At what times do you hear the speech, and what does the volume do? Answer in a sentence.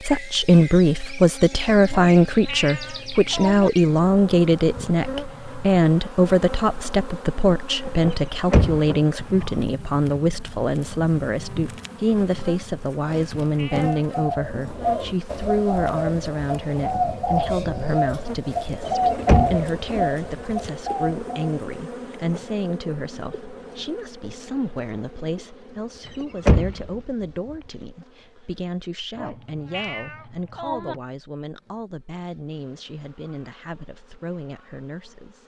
The speech can be heard from 0.1 to 35.4 s, getting quieter.